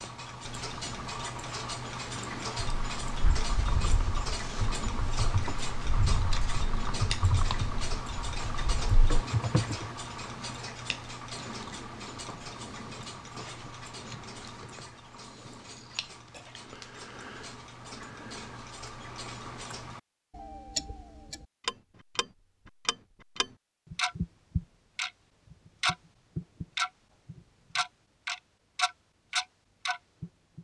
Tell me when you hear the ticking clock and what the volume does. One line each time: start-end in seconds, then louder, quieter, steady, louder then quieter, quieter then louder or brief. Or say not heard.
0.0-30.5 quieter then louder.